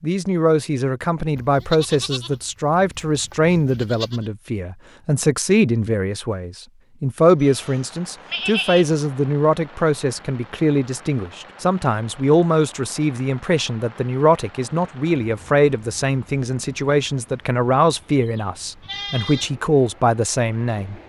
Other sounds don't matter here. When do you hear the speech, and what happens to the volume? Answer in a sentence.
The speech can be heard from 0.0 to 20.9 s, at a steady volume.